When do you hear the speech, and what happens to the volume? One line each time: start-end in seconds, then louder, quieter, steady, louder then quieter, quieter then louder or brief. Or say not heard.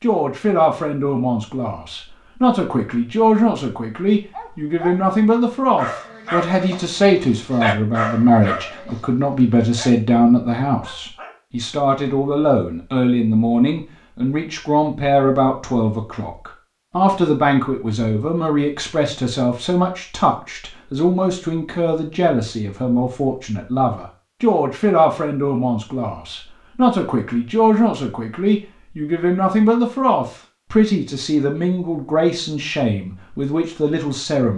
0.0-34.5 steady.